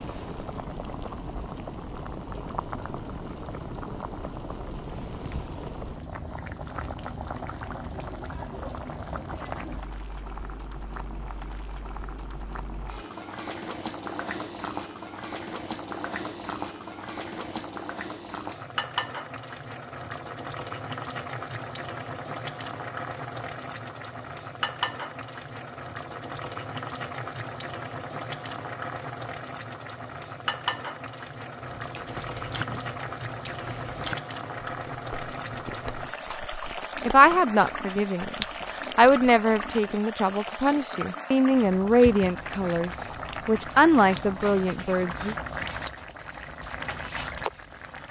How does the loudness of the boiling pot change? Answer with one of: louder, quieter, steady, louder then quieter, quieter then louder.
steady.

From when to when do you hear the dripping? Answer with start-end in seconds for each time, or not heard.
not heard.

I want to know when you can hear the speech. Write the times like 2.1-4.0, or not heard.
37.0-45.4.